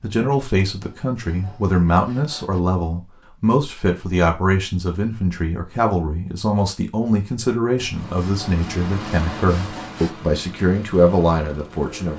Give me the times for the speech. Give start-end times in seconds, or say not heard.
0.0-12.1.